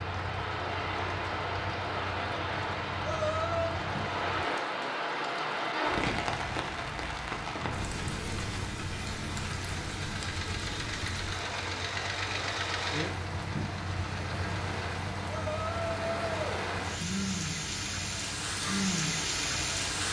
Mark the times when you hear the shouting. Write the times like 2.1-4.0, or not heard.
3.0-3.8, 15.2-16.4.